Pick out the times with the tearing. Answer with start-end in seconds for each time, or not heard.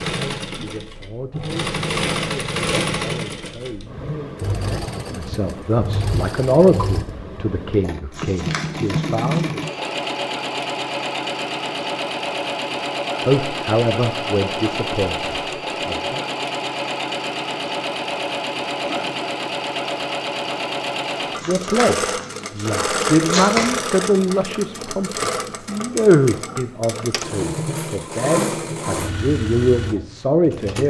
8.1-9.8, 21.4-23.8.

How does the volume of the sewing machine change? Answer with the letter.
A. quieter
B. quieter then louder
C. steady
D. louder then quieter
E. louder
C.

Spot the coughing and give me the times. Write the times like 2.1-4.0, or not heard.
18.6-19.2.